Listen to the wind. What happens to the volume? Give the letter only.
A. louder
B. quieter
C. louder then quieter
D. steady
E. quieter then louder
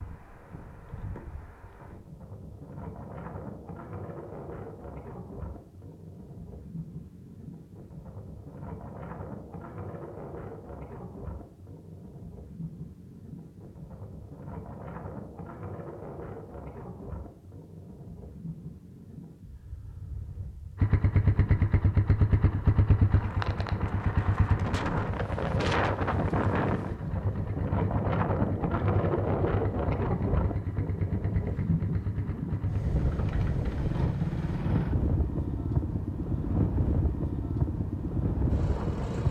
A.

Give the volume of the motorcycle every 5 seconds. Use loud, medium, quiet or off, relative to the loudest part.
off, off, off, off, loud, medium, medium, medium.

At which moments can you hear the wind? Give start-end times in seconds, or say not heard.
0.0-39.2.